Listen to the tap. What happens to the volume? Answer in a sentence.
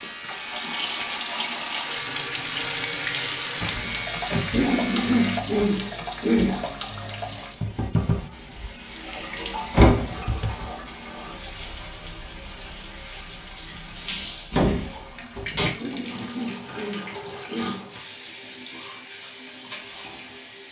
The volume of the tap goes down.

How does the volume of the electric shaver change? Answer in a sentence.
The loudness of the electric shaver stays about the same.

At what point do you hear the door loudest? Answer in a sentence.
The volume of the door peaks at 10 seconds.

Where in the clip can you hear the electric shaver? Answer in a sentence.
The electric shaver can be heard from 0.0 to 5.4 s.